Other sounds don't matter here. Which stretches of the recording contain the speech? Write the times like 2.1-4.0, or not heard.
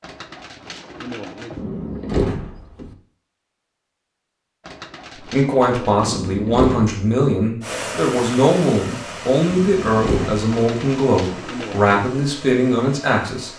5.2-13.5.